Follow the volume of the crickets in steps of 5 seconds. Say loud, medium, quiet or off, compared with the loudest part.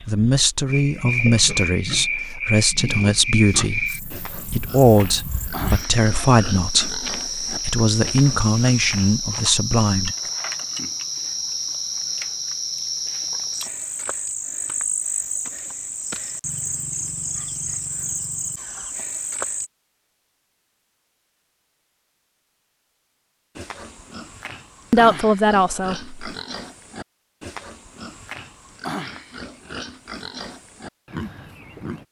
loud, loud, loud, loud, off, off, off.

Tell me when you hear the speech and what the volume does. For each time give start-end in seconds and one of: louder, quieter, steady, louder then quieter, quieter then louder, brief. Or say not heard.
0.0-10.2 steady
24.9-26.1 brief.